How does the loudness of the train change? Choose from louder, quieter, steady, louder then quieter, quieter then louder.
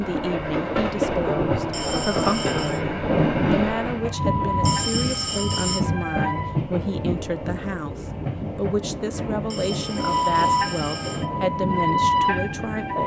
quieter.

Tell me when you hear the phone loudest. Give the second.
5 s.